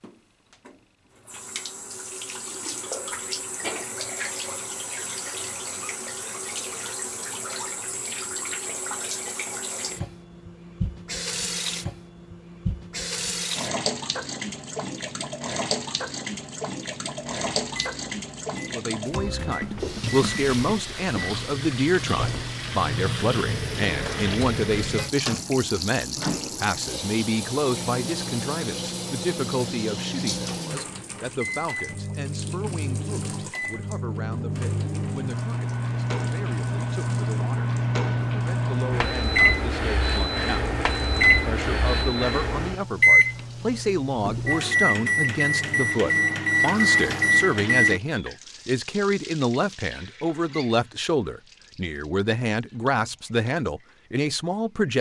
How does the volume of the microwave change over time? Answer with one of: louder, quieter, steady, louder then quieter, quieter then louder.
louder.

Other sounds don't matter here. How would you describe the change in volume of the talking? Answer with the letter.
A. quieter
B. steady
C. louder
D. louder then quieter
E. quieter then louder
E.